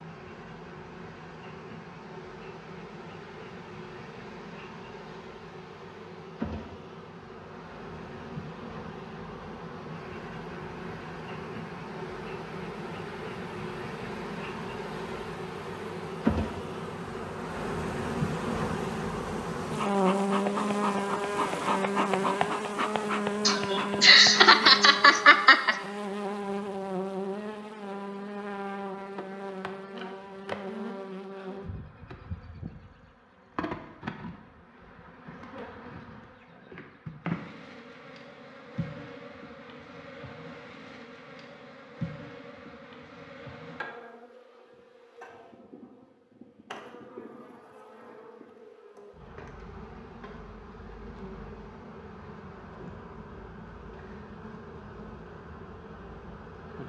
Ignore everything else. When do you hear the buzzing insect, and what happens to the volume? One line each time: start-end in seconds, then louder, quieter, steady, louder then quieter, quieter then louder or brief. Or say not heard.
0.0-56.8 louder then quieter.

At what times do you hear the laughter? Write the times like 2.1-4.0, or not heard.
23.4-25.8.